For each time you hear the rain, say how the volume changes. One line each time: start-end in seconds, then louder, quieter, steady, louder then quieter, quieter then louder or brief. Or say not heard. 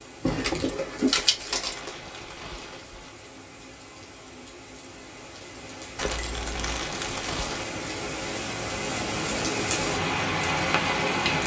0.0-11.4 louder.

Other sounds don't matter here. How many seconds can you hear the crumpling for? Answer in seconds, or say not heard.
4 s.